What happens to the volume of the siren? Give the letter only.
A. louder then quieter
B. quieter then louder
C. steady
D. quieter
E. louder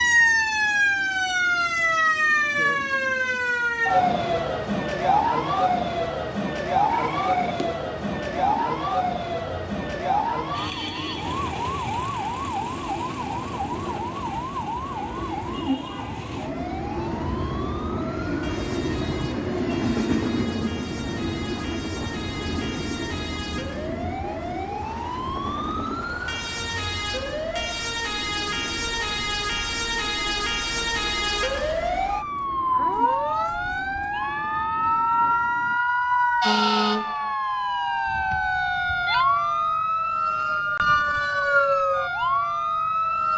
B.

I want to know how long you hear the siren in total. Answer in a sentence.
You can hear the siren for 43 seconds altogether.